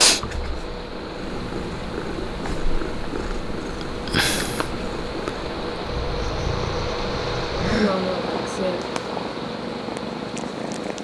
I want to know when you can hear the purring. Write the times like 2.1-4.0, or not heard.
0.0-10.9.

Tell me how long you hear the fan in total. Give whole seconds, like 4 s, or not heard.
11 s.